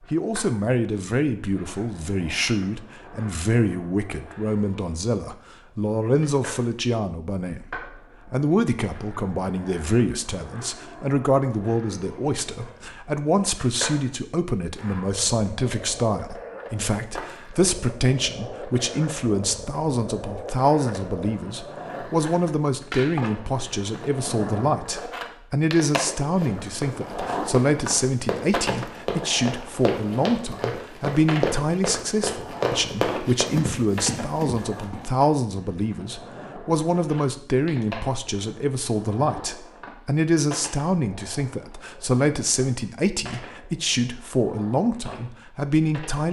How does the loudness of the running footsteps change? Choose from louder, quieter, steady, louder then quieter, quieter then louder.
louder.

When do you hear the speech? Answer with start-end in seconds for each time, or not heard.
0.1-46.2.